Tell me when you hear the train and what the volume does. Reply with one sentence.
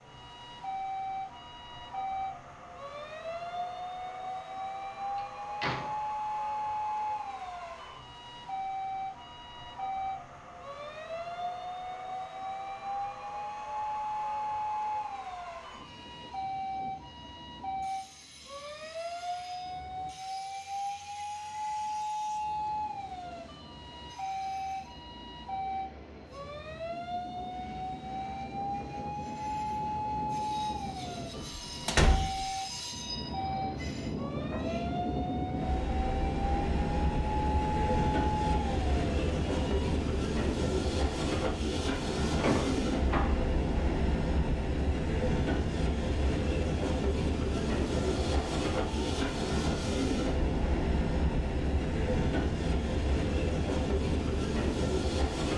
You can hear the train from 0.0 to 55.5 s, getting louder.